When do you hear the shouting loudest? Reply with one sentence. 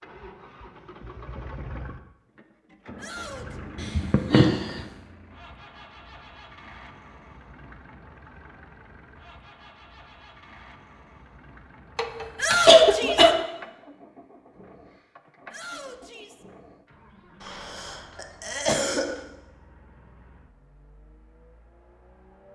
The loudest moment of the shouting is at 13 seconds.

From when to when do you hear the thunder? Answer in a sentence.
The thunder can't be heard in this clip.